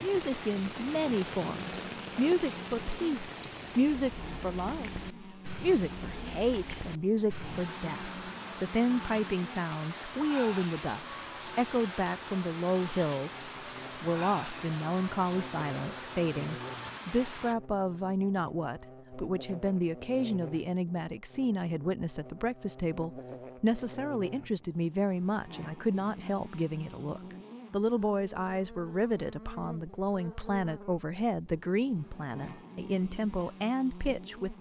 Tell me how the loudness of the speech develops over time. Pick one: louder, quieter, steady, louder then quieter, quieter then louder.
steady.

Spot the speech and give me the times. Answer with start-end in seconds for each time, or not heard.
0.0-34.5.